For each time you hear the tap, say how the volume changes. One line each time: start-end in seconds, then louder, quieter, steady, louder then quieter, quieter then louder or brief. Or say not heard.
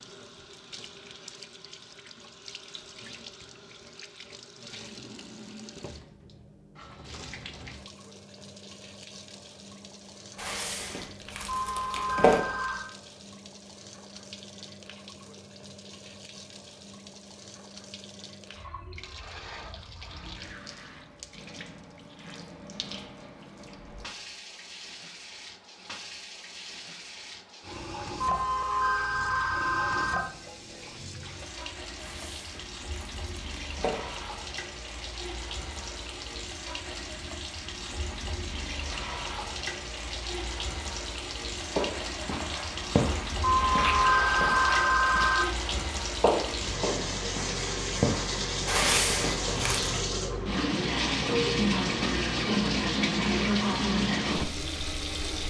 0.0-55.4 louder.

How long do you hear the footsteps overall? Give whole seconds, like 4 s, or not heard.
8 s.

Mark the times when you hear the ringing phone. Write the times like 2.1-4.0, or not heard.
11.4-12.9, 28.2-30.2, 43.4-45.5.